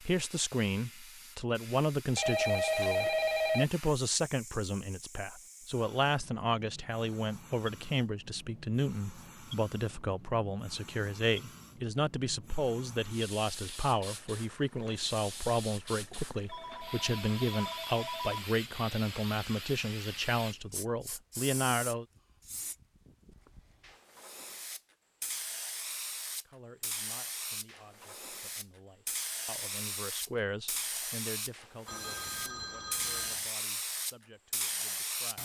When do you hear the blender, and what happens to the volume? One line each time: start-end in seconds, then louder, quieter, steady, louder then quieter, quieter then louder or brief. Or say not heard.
not heard.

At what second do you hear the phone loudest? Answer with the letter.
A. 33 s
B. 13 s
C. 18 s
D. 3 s
D.